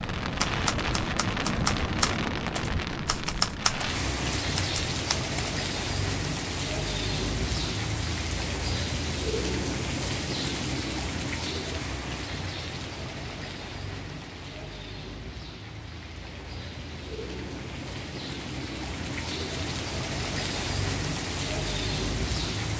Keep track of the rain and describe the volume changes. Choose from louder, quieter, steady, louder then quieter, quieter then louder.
quieter then louder.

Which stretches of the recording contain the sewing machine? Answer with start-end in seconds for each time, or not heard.
not heard.